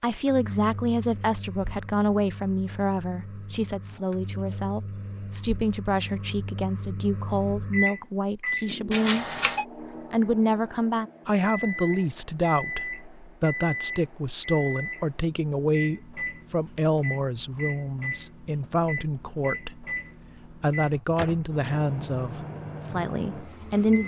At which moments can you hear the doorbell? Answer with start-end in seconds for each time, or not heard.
8.9-9.7.